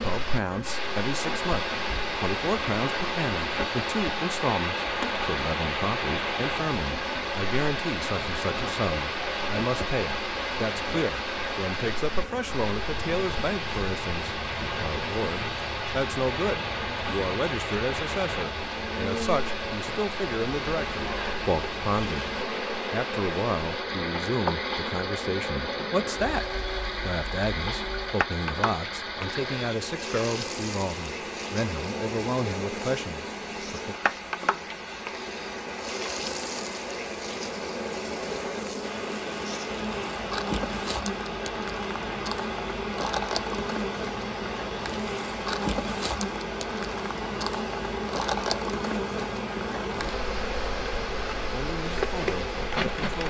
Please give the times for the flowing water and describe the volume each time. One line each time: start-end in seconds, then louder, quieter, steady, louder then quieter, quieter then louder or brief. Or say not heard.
0.0-53.2 quieter.